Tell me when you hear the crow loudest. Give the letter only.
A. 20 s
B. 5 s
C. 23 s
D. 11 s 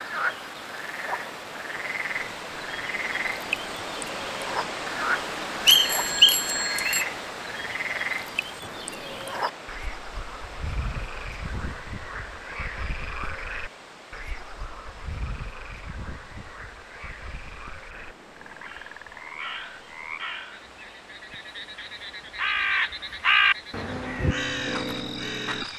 C.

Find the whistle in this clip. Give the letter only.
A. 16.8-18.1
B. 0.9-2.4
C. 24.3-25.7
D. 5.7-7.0
D.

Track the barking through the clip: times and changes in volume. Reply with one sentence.
The barking can't be heard in this clip.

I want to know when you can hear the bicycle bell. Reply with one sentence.
The bicycle bell can be heard from 5.7 to 7.0 s.